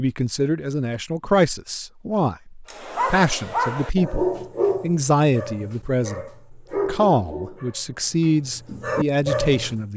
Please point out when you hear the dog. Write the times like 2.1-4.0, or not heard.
2.6-9.8.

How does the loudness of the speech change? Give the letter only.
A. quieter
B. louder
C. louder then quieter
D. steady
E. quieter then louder
D.